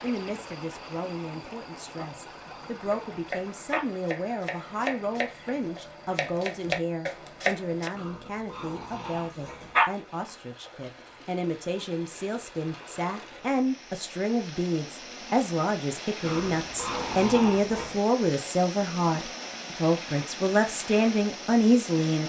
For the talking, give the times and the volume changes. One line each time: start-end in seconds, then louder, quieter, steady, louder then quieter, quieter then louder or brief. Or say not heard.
0.0-22.2 louder.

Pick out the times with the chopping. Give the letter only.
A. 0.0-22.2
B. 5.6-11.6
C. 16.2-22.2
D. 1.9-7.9
D.